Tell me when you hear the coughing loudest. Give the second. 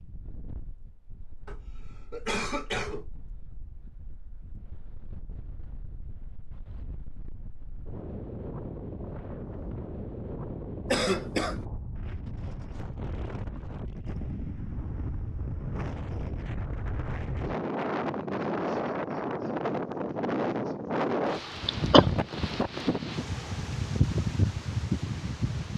22 s.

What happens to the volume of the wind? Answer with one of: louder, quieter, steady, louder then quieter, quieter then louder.
louder.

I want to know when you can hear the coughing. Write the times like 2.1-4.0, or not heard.
1.4-3.1, 10.9-11.6, 21.6-22.1.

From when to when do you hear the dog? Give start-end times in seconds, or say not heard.
not heard.